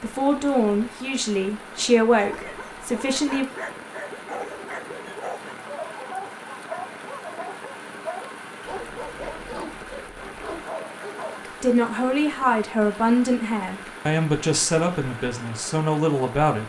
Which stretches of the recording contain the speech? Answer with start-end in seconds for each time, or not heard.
0.0-3.5, 11.4-16.6.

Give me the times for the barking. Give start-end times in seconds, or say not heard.
2.1-11.4.